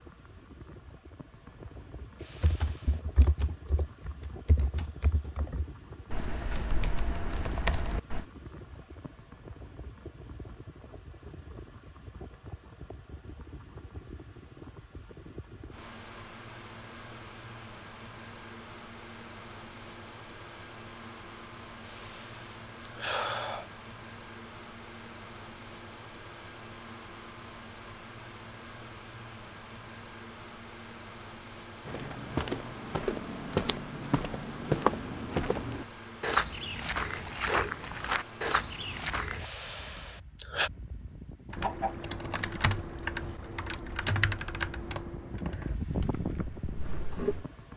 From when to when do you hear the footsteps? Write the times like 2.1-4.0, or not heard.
31.9-39.5.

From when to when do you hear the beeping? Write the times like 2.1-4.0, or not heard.
not heard.